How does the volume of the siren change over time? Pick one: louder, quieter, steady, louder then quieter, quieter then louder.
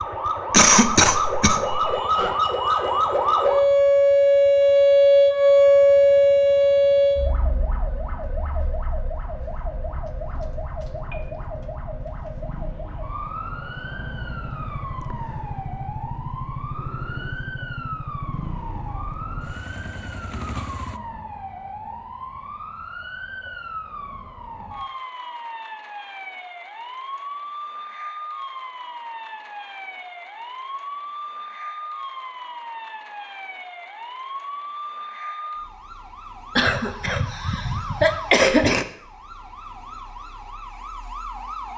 quieter.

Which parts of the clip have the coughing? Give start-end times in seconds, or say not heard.
0.5-1.9, 36.5-38.9.